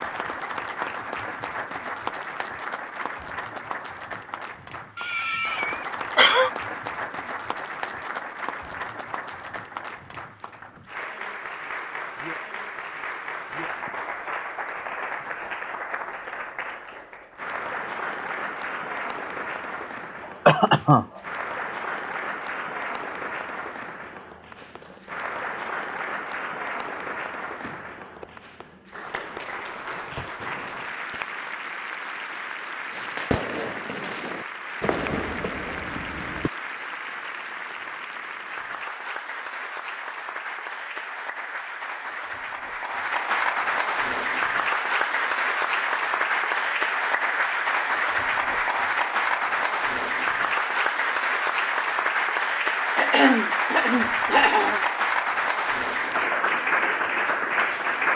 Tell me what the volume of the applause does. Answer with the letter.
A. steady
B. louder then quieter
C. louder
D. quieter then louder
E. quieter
C.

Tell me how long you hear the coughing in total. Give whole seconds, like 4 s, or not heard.
4 s.